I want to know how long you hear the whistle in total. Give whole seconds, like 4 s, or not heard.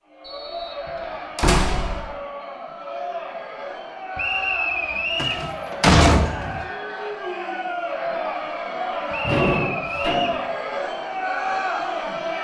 4 s.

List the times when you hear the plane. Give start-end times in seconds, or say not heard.
not heard.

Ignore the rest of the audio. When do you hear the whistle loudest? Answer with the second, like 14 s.
5 s.